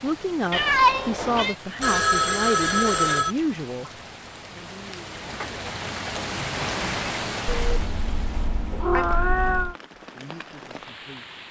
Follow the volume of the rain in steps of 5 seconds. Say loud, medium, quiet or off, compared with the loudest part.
medium, loud, medium.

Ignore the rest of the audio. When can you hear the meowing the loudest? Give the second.
1 s.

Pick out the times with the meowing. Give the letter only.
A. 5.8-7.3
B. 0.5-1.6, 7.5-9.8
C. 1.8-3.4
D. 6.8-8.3
B.